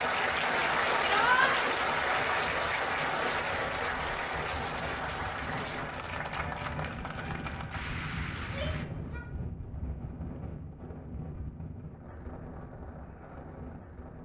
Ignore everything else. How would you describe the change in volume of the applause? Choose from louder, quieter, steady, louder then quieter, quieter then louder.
quieter.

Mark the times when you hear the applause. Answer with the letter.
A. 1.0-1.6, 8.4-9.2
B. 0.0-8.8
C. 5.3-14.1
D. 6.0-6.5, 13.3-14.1
B.